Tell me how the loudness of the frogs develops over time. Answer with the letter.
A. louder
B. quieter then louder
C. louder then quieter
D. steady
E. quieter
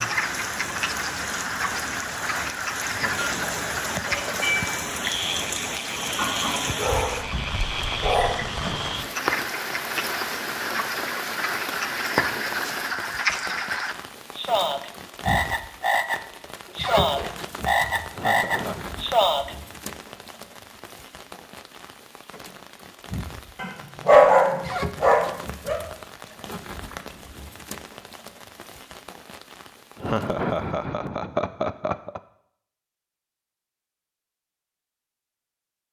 A.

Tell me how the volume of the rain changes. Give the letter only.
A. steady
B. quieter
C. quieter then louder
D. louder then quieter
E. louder
B.